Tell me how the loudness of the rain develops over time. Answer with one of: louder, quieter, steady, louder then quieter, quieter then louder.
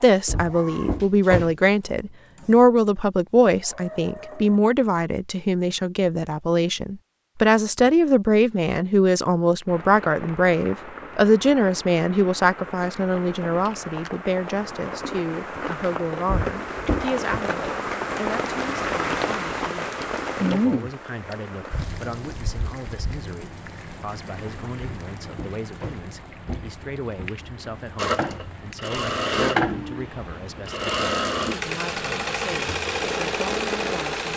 louder then quieter.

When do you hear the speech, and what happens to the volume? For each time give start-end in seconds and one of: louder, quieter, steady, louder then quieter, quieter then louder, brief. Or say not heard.
0.0-34.3 quieter.